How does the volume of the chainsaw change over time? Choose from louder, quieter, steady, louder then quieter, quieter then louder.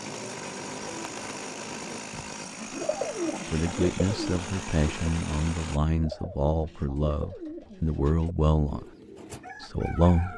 steady.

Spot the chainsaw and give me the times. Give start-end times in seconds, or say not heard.
0.0-5.8.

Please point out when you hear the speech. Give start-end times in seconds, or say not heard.
3.5-8.8, 9.6-10.3.